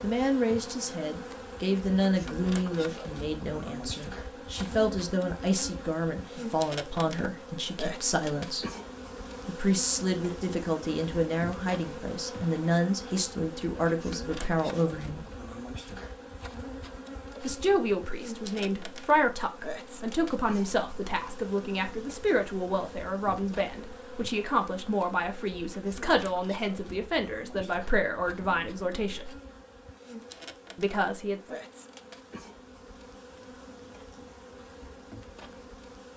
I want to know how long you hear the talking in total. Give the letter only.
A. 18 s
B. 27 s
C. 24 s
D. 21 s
B.